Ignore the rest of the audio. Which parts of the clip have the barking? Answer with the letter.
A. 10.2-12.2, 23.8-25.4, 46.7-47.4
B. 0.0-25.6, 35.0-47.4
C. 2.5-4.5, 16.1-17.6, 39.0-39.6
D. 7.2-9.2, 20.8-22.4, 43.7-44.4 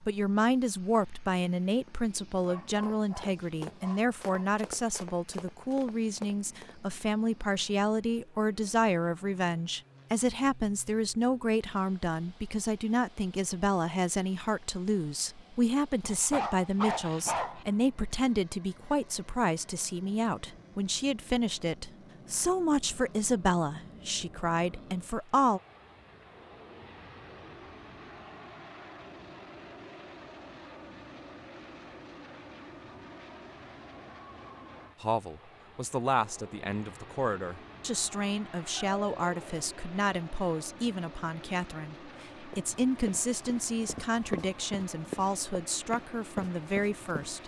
C.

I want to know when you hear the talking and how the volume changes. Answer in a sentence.
The talking can be heard from 0.0 to 25.6 s, at a steady volume; and from 35.0 to 47.4 s, at a steady volume.